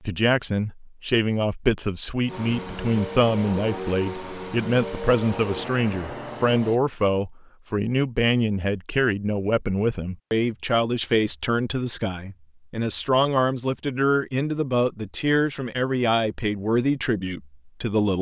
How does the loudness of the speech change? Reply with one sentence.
The loudness of the speech stays about the same.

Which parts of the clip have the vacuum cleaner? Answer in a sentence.
You can hear the vacuum cleaner from 2.2 to 6.8 s.